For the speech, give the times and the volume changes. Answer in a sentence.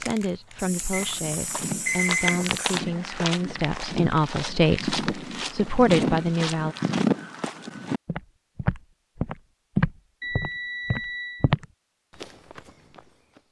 You can hear the speech from 0.0 to 6.8 s, getting louder.